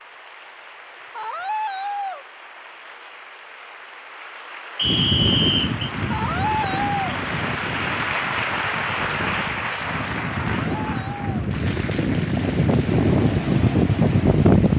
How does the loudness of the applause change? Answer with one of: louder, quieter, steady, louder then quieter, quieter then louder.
louder then quieter.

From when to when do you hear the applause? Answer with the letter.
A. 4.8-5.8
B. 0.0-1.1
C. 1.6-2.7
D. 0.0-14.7
D.